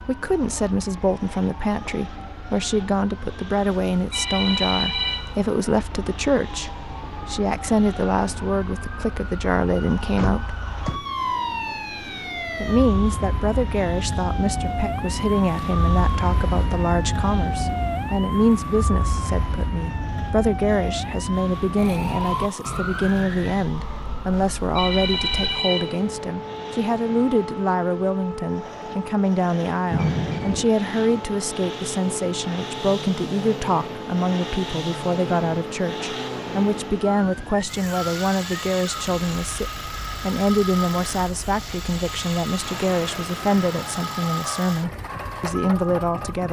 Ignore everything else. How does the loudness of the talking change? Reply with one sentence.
The volume of the talking stays about the same.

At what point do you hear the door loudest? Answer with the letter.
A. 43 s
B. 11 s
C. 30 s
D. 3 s
C.